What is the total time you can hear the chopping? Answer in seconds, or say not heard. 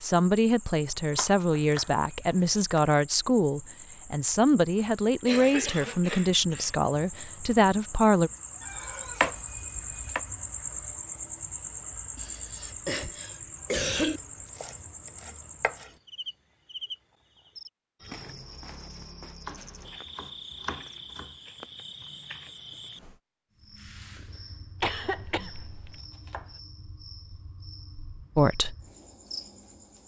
9 s.